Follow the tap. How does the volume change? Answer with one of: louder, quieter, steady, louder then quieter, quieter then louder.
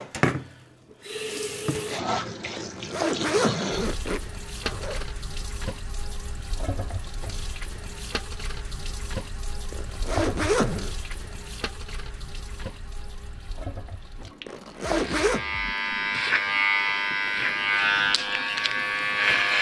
quieter.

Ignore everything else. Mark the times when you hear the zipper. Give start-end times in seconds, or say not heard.
2.5-5.0, 9.7-10.9, 14.4-15.4.